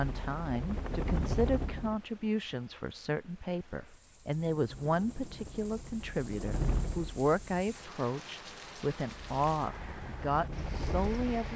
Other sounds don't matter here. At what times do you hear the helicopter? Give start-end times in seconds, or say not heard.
0.0-1.9, 4.2-7.7, 9.1-11.5.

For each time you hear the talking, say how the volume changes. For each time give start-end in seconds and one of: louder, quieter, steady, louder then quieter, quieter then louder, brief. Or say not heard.
0.0-11.5 steady.